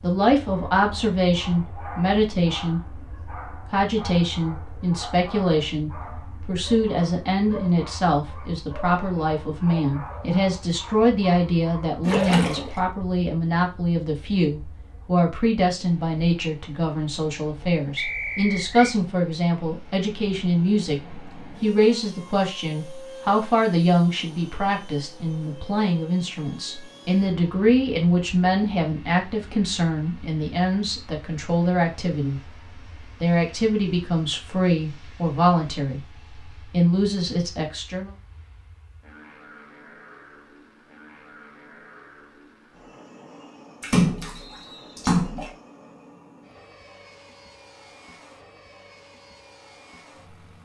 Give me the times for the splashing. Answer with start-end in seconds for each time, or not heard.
12.1-12.8, 43.8-45.5.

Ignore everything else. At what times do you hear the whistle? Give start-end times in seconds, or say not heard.
17.9-18.9, 44.4-45.0.